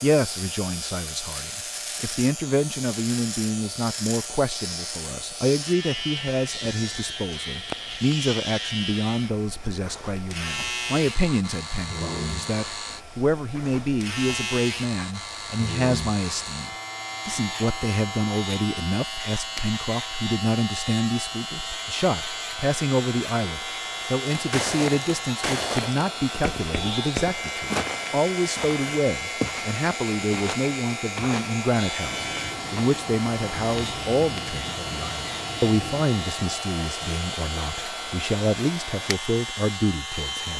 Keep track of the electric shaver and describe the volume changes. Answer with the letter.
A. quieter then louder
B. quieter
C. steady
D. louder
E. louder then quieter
C.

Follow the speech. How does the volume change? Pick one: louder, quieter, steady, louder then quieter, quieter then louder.
steady.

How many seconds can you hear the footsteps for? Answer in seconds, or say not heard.
12 s.